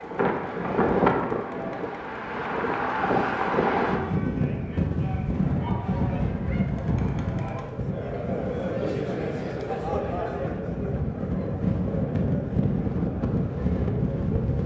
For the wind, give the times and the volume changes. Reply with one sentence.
The wind can be heard from 0.0 to 14.6 s, getting quieter then louder.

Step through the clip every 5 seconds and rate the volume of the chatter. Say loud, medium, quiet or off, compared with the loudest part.
medium, loud, loud.